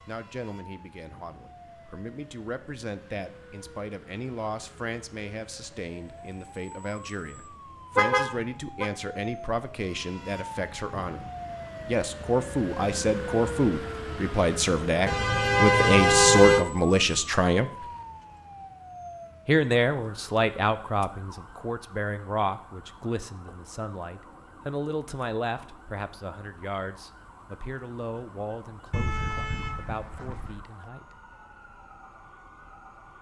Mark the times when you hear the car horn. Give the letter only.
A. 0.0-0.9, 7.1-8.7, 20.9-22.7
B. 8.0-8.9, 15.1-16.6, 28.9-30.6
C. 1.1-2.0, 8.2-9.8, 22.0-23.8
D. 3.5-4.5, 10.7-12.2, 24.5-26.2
B.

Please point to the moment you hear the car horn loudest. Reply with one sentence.
The loudest moment of the car horn is at 16 seconds.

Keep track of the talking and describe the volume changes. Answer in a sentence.
The volume of the talking goes up, then down.